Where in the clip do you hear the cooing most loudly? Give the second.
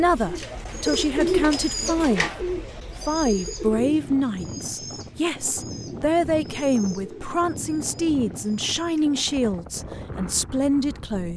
1 s.